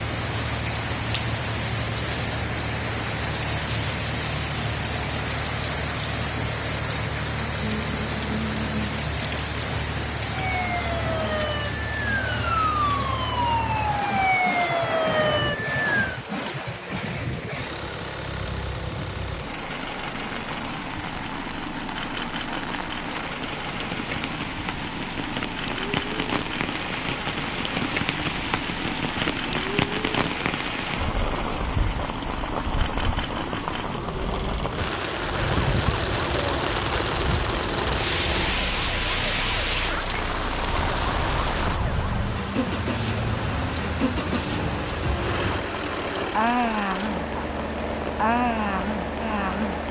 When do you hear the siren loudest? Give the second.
15 s.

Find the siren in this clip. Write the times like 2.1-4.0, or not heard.
10.3-16.2, 35.1-42.2.